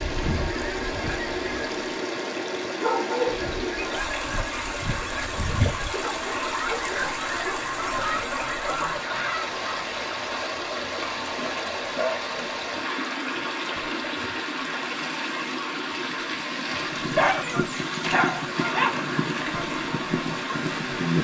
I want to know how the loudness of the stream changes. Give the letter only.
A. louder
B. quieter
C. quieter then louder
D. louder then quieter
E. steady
E.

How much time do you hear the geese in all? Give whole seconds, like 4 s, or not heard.
13 s.